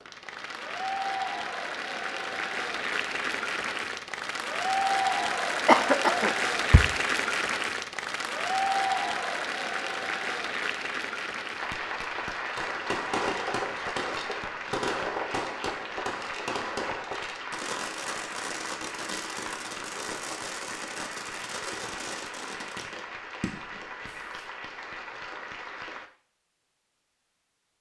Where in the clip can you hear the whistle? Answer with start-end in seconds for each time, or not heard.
not heard.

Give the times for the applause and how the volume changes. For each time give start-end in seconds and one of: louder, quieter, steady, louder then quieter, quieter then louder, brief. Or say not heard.
0.0-26.1 quieter.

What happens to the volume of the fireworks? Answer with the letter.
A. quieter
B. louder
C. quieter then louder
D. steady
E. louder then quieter
A.